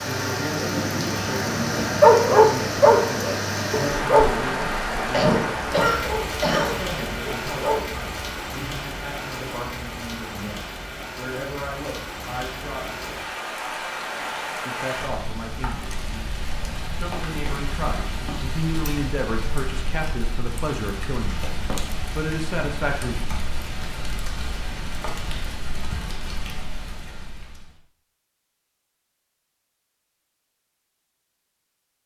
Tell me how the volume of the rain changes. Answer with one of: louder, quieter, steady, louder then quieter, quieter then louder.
quieter.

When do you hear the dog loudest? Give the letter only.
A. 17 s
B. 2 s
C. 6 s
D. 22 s
B.